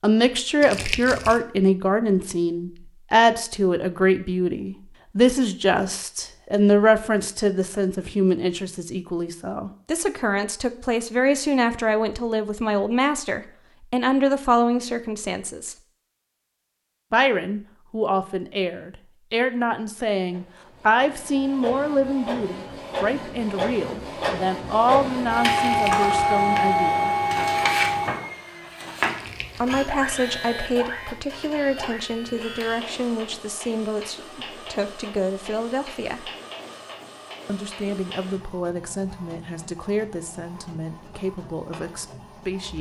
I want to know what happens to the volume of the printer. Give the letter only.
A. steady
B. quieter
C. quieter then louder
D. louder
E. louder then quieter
E.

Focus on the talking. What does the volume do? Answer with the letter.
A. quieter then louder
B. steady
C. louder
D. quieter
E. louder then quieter
D.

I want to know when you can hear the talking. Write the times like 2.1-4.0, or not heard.
0.0-15.8, 17.1-27.1, 29.6-36.3, 37.5-42.7.